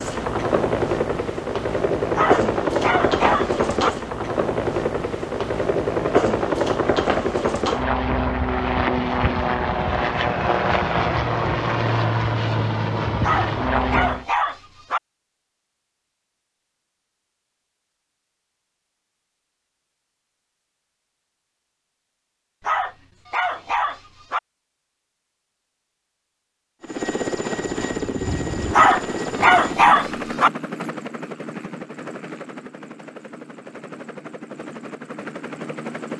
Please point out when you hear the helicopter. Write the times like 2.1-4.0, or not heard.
0.0-14.2, 26.8-36.1.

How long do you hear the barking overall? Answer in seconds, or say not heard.
7 s.